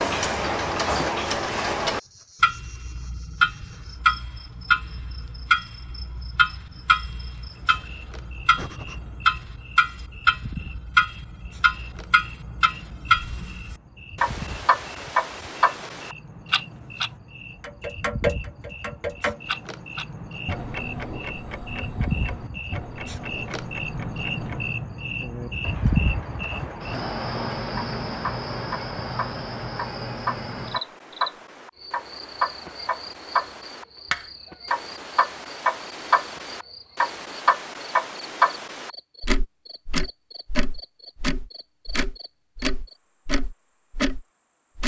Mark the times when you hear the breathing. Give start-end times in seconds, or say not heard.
8.6-9.0.